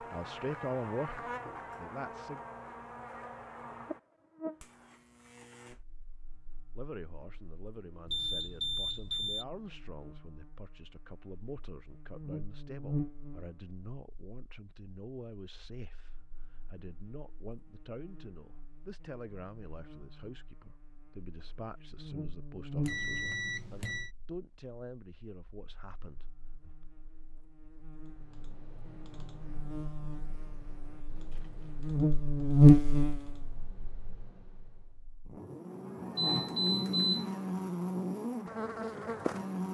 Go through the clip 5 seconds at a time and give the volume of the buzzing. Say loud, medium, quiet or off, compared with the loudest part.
quiet, quiet, quiet, quiet, quiet, quiet, loud, medium.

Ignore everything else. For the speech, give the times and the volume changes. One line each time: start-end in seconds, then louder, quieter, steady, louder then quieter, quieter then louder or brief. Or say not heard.
0.1-2.4 brief
6.8-26.9 steady.